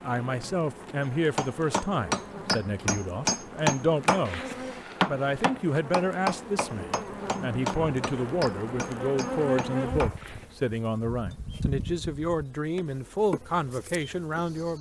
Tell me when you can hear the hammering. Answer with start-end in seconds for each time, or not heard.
1.0-10.4.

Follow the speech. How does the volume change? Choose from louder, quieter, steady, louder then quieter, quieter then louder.
steady.